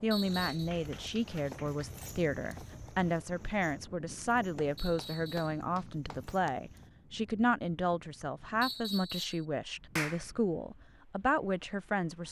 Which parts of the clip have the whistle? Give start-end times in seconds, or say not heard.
0.1-0.7, 4.8-5.6, 8.6-9.4.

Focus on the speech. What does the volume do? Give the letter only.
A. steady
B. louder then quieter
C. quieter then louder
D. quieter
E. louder
A.